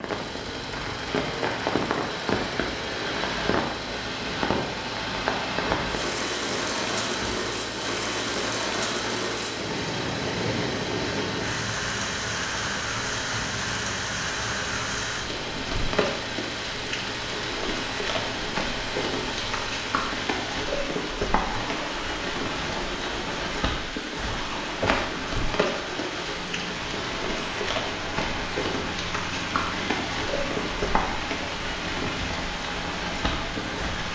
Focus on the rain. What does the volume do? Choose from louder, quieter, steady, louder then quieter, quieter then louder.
steady.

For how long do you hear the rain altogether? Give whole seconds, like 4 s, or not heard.
34 s.